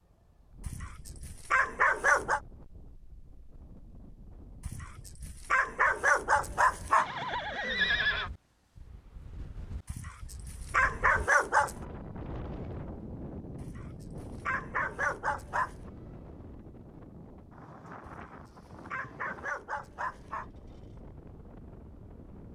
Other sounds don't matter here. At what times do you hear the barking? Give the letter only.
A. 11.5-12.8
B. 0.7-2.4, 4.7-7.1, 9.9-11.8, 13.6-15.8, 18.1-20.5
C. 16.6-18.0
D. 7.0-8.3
B.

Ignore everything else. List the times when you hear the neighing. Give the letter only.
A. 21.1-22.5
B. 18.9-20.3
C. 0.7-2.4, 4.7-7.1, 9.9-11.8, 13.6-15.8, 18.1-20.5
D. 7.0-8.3
D.